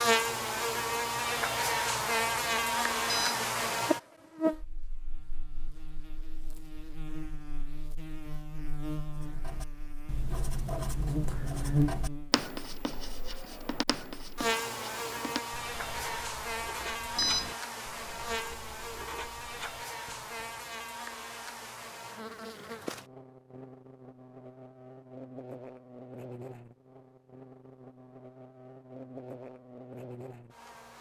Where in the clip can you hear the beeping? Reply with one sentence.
The beeping can be heard from 3.0 to 3.5 s and from 17.1 to 17.6 s.